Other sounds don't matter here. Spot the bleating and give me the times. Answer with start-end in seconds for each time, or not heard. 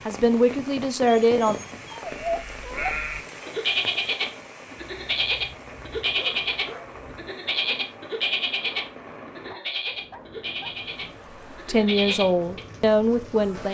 2.0-12.6.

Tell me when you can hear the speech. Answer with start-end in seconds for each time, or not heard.
0.1-1.6, 11.7-13.6.